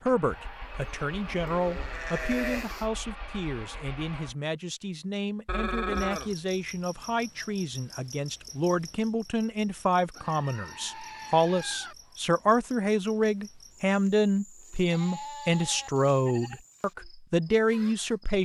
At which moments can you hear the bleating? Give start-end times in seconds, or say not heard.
0.3-2.9, 5.5-6.3, 10.1-11.9, 14.8-16.6.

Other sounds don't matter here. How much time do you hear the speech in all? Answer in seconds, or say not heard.
18 s.